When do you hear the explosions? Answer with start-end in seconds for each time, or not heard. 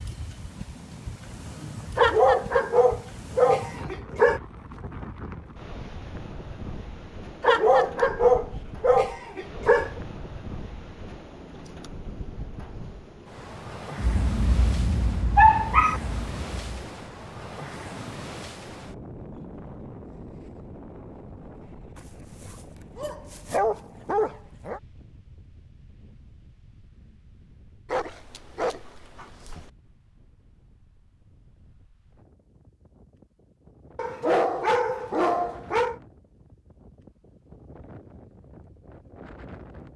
13.9-16.9.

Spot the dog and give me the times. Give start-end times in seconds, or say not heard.
1.9-4.4, 7.4-9.9, 15.3-16.0, 21.9-24.8, 27.9-29.7, 34.0-36.0.